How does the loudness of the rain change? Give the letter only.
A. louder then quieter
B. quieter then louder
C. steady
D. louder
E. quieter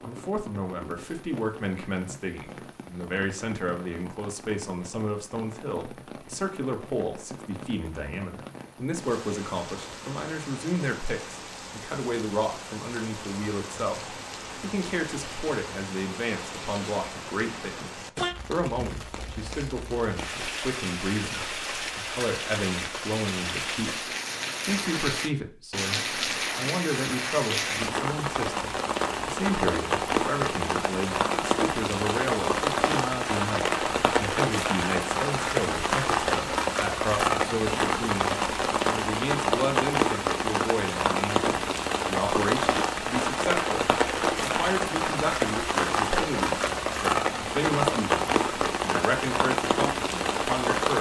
D.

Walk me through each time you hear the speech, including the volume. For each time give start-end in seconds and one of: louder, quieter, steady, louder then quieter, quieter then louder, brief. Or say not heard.
0.0-50.9 steady.